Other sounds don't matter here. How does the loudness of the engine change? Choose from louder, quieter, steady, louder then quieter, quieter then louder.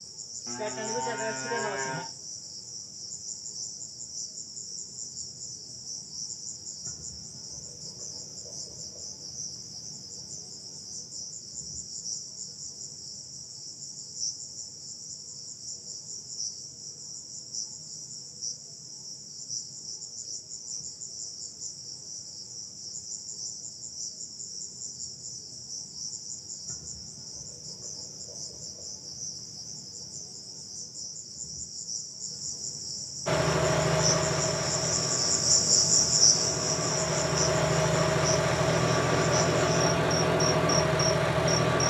quieter then louder.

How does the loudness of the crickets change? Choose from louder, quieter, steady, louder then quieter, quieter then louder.
louder.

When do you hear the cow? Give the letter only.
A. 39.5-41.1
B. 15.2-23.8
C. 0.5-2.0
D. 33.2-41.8
C.